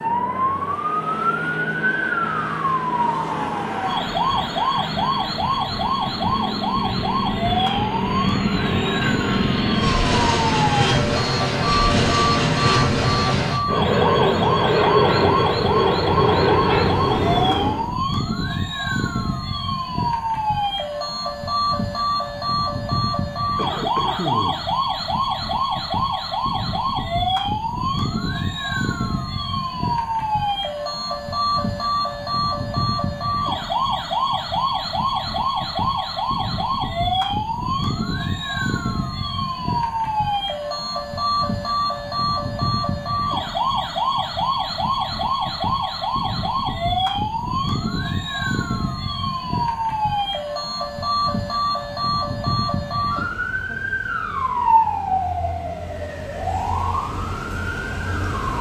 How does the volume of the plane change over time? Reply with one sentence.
The loudness of the plane goes up.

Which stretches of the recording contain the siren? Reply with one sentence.
You can hear the siren from 0.0 to 58.5 s.